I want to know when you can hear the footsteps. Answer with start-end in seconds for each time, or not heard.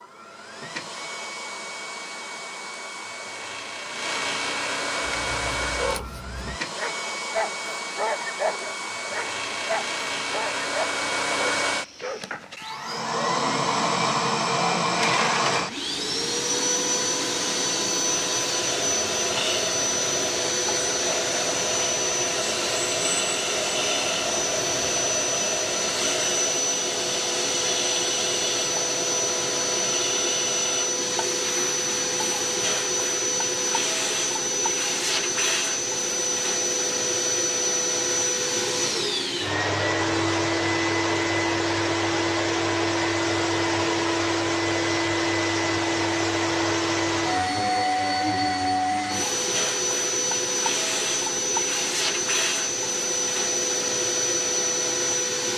not heard.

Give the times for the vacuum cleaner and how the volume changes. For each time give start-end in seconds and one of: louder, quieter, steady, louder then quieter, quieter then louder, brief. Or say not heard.
0.0-55.5 louder.